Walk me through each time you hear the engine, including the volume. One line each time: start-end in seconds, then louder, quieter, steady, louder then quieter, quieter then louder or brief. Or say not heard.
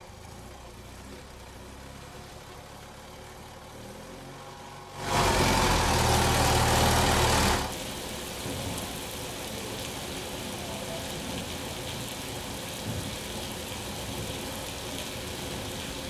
0.0-16.0 louder then quieter.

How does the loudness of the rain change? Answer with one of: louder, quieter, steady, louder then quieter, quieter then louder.
steady.